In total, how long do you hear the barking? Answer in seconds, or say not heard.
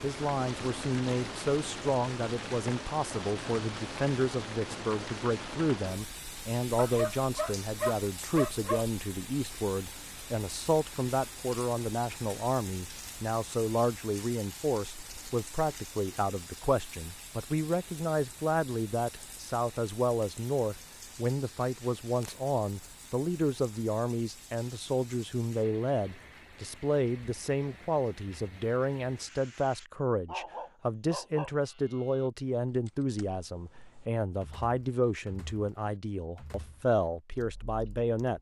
4 s.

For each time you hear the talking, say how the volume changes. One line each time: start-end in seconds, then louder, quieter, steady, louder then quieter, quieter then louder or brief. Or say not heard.
0.0-38.3 steady.